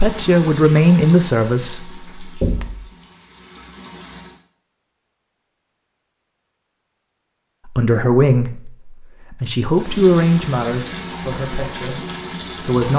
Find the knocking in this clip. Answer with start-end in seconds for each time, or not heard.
2.4-2.9.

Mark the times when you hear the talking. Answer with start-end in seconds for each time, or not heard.
0.0-2.6, 7.7-12.9.